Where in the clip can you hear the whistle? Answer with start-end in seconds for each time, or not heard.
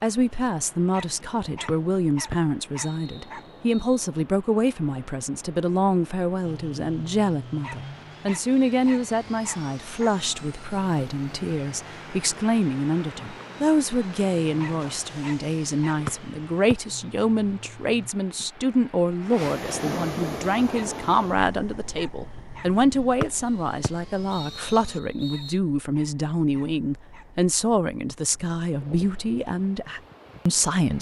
1.6-4.0, 16.1-16.8, 23.2-25.6.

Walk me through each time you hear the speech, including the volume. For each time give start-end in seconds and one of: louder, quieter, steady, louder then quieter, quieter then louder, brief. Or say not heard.
0.0-30.9 steady.